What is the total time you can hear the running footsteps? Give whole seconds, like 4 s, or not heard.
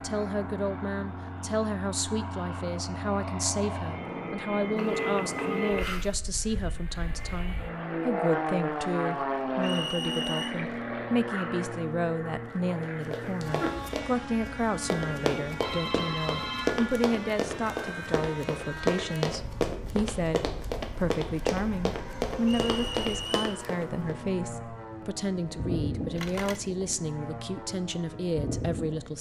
11 s.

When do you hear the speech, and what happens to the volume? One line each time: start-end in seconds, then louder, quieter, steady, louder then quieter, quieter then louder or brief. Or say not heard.
0.0-29.1 steady.